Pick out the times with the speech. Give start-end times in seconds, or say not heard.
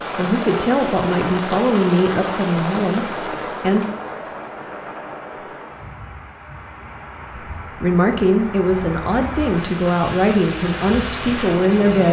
0.1-3.9, 7.8-12.0.